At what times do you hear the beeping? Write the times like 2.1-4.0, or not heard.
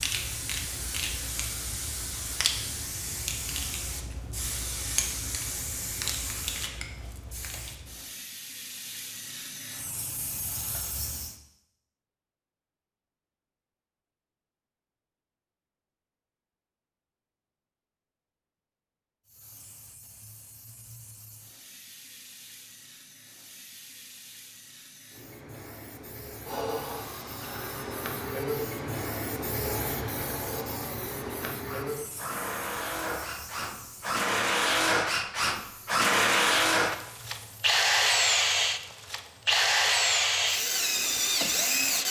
not heard.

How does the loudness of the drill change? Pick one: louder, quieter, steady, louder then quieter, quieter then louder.
louder.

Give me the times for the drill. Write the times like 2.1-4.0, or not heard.
26.4-42.0.